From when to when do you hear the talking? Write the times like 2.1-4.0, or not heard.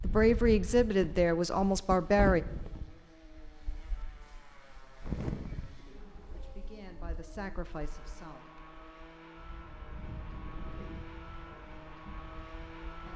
0.0-2.4, 5.8-8.4.